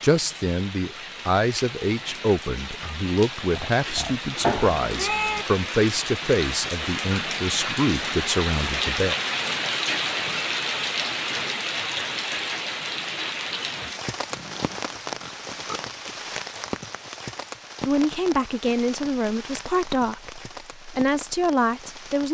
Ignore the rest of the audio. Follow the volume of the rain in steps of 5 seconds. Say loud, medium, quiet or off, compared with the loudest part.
medium, loud, loud, medium, quiet.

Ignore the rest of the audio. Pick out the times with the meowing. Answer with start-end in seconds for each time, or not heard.
4.4-5.5.